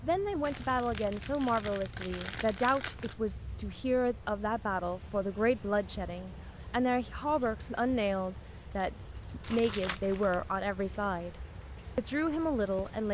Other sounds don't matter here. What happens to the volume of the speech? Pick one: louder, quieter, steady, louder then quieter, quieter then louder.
steady.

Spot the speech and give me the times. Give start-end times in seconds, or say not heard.
0.0-13.0.